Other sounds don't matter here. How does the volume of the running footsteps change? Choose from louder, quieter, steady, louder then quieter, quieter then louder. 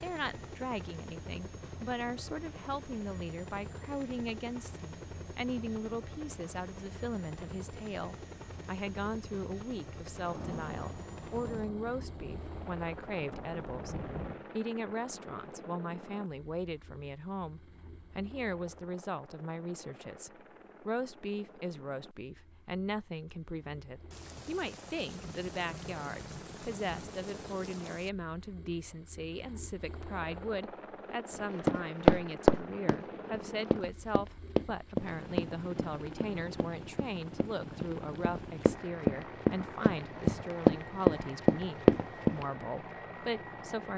quieter then louder.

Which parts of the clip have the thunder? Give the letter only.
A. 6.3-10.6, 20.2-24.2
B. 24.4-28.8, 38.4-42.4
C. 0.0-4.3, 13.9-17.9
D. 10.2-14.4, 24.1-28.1
D.